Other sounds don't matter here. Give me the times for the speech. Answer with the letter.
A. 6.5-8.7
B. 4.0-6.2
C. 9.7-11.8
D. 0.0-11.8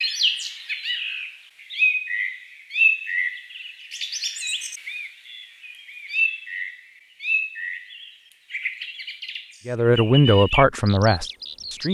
C.